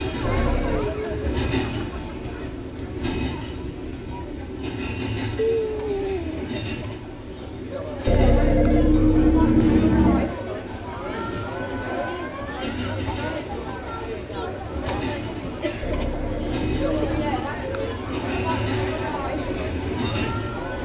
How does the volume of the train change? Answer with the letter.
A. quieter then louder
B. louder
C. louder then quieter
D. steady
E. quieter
A.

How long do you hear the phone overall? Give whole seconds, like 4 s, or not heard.
5 s.